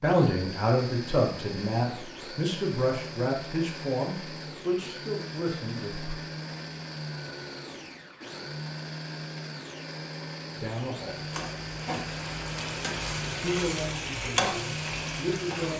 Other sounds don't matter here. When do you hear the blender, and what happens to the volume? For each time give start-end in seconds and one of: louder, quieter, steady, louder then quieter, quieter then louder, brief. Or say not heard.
0.0-15.7 steady.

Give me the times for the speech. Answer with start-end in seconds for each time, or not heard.
0.0-6.2, 10.6-11.2, 13.4-15.7.